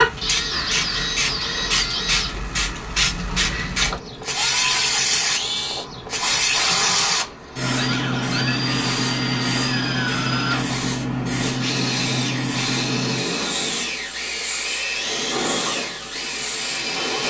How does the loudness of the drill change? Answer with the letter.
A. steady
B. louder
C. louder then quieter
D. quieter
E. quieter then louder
A.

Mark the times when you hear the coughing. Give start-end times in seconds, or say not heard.
not heard.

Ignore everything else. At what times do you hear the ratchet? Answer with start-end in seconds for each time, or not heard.
not heard.